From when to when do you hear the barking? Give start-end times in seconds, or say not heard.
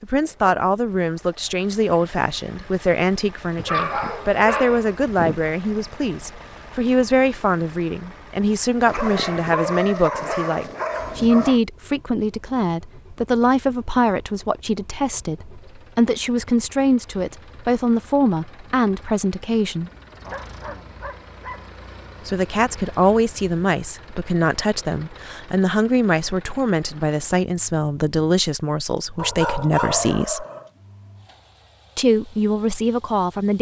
3.5-5.4, 8.8-11.6, 20.2-21.7, 29.1-30.7.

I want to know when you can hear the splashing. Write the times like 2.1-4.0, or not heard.
not heard.